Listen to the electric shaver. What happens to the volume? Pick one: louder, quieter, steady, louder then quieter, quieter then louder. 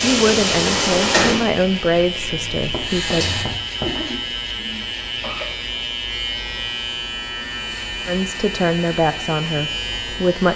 steady.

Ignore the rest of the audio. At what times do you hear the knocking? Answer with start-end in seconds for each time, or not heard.
2.7-4.0.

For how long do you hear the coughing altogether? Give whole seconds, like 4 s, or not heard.
2 s.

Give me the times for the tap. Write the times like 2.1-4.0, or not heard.
0.0-3.5.